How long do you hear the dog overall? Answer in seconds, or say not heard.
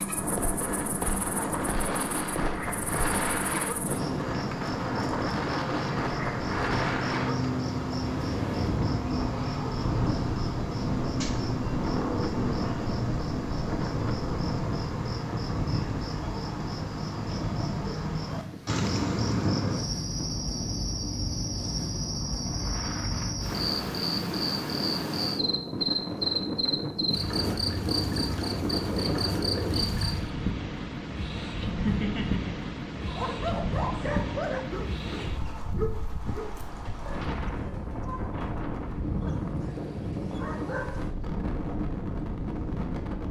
8 s.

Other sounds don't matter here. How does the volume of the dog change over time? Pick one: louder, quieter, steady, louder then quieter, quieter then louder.
quieter.